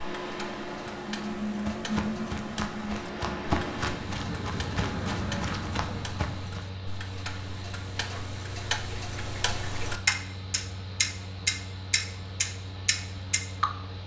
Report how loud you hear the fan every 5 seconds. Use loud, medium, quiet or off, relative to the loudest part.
loud, medium, medium.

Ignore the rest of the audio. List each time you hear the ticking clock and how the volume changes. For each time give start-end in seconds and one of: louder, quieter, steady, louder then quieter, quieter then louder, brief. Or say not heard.
0.0-13.7 louder.